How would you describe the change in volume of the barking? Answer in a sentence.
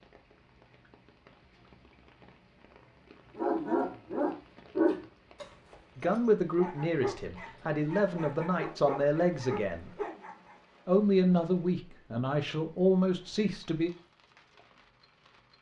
The loudness of the barking goes down, then up.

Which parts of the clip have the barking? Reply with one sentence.
You can hear the barking from 3.4 to 10.6 s.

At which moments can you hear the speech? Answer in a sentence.
The speech can be heard from 6.0 to 9.9 s and from 10.8 to 13.9 s.